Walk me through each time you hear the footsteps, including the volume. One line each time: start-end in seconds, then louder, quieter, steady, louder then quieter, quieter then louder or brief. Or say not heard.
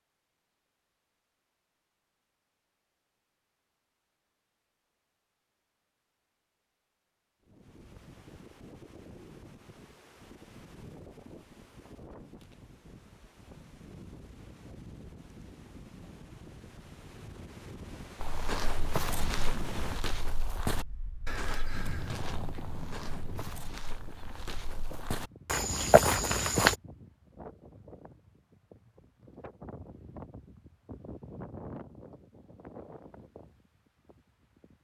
18.2-26.8 quieter then louder.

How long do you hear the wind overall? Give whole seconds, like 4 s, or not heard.
27 s.